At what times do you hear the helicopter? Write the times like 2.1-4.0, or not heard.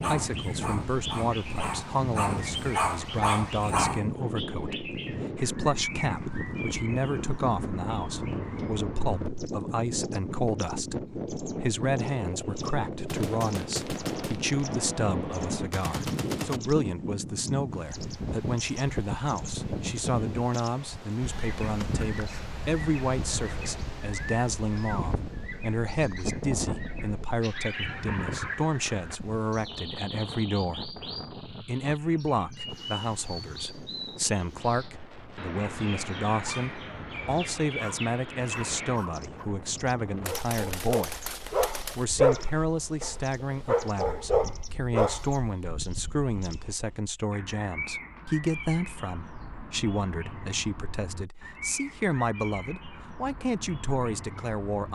not heard.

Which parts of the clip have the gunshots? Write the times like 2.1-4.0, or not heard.
13.1-16.6, 40.2-42.0.